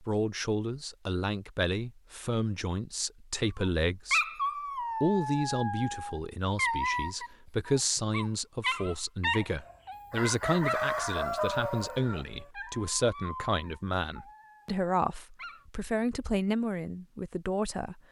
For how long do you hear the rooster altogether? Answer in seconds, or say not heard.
3 s.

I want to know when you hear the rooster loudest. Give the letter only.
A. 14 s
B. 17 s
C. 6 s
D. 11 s
D.